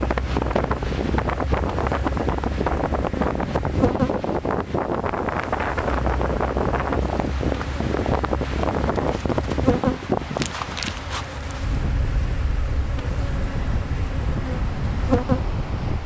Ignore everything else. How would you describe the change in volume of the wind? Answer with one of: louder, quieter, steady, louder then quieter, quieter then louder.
quieter.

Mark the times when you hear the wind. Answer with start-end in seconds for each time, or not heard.
0.0-16.0.